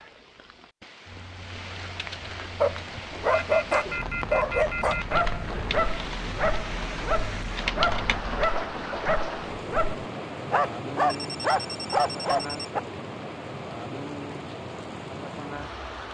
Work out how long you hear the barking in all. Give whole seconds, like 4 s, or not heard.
10 s.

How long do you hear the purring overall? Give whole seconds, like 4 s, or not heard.
not heard.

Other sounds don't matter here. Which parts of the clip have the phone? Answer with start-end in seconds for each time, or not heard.
3.3-5.2, 11.1-12.7.